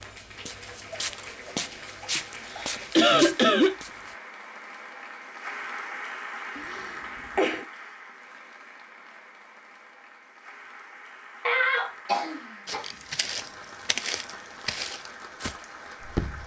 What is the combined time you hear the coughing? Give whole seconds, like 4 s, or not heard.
4 s.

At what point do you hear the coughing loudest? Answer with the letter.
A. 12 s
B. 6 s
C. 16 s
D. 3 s
D.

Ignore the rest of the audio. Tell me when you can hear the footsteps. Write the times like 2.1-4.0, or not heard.
0.0-4.2, 12.7-16.4.